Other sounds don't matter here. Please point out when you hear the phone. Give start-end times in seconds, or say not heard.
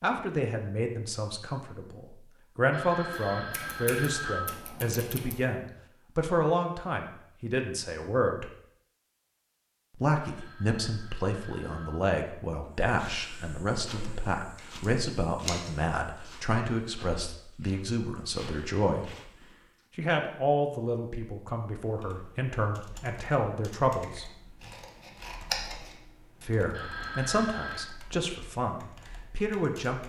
2.7-4.5, 10.2-12.1, 26.7-27.9.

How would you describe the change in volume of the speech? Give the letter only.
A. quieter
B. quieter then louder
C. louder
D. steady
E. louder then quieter
D.